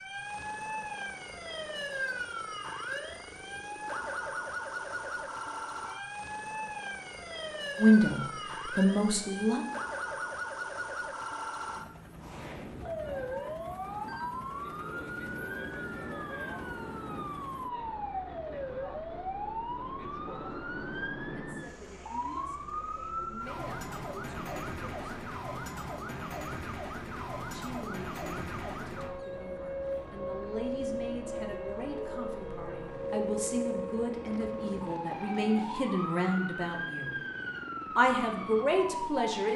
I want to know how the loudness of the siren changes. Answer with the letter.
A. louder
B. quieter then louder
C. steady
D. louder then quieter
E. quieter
C.